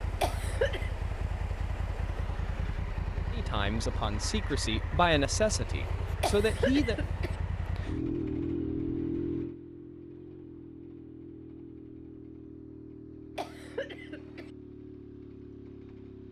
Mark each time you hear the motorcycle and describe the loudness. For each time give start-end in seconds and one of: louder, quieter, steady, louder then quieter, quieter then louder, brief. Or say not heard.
0.0-16.2 louder then quieter.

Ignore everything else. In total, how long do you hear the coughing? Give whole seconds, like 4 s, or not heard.
3 s.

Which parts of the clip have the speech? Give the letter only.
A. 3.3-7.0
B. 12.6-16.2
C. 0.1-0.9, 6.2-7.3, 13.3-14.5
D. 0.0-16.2
A.